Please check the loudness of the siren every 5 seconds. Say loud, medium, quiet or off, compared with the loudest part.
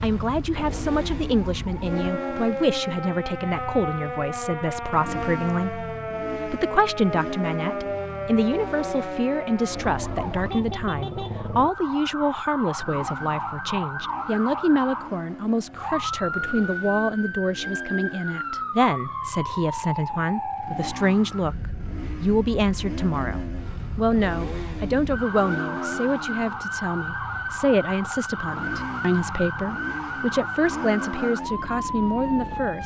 loud, loud, loud, loud, medium, loud, loud.